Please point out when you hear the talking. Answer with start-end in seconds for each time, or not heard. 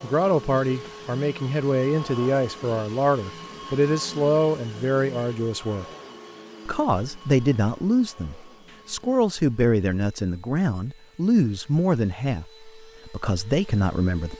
0.0-5.8, 6.7-14.3.